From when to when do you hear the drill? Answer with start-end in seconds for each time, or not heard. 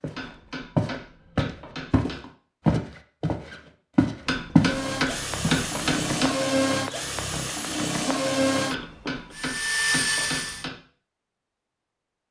4.5-10.7.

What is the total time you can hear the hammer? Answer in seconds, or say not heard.
6 s.